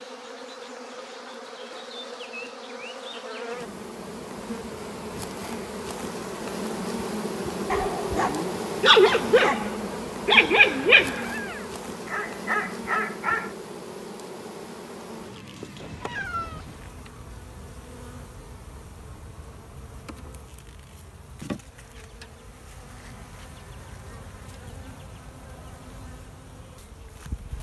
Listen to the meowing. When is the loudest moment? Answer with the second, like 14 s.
16 s.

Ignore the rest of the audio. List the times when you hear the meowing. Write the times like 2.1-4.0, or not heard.
11.2-11.8, 15.8-16.9.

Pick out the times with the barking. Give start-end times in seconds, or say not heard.
7.7-11.3, 12.1-13.6.